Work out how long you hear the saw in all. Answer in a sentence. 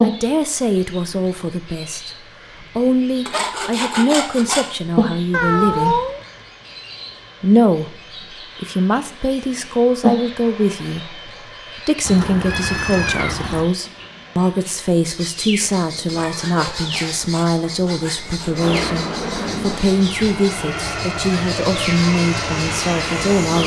The saw can be heard for 4 seconds in total.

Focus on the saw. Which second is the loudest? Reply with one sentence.
The volume of the saw peaks at 4 seconds.